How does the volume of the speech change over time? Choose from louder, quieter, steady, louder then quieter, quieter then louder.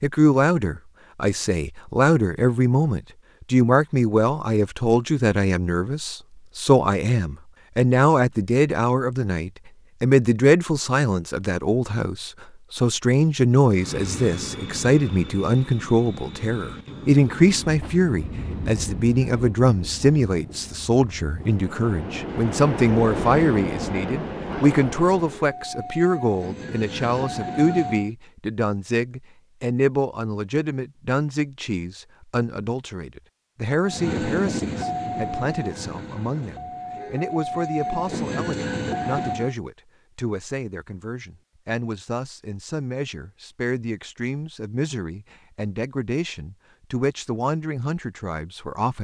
quieter.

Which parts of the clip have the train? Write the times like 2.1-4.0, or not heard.
13.7-28.1, 33.8-39.5.